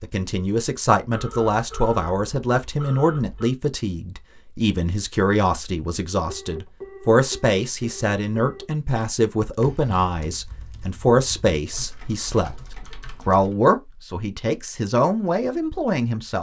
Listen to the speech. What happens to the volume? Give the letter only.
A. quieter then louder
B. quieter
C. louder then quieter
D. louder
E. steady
E.